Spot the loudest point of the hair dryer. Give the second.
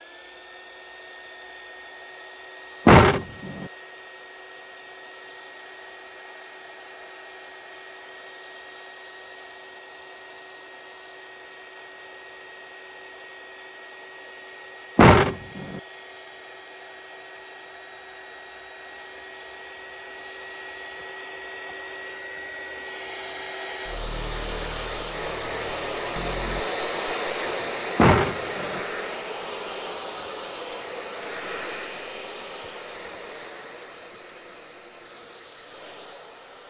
27 s.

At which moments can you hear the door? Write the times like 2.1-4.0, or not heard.
2.9-3.6, 14.9-15.8, 27.9-28.8.